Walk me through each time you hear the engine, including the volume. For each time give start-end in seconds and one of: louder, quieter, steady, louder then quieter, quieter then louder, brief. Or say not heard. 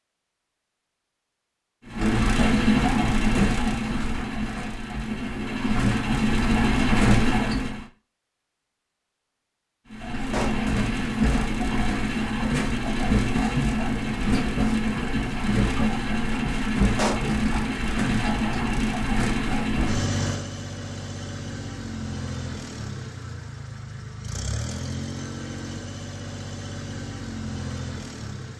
1.9-7.8 quieter then louder
9.9-28.5 quieter.